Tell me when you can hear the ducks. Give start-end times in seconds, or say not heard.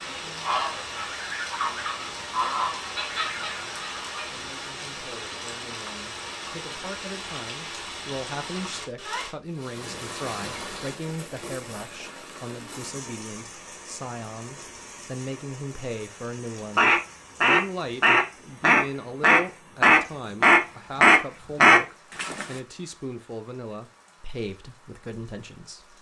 0.0-4.3, 16.8-22.4.